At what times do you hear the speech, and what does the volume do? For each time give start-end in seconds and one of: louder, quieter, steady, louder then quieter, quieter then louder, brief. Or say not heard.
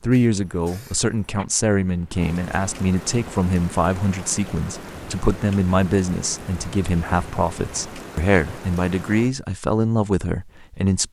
0.0-11.0 steady.